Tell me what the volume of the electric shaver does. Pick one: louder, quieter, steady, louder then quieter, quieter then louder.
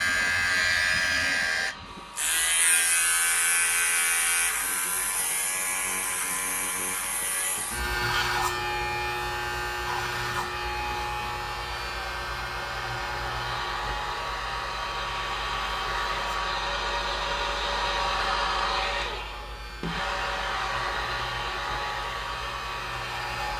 quieter.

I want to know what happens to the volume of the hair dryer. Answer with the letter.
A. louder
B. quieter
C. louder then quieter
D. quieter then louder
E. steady
A.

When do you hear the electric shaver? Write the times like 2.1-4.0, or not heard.
0.0-23.5.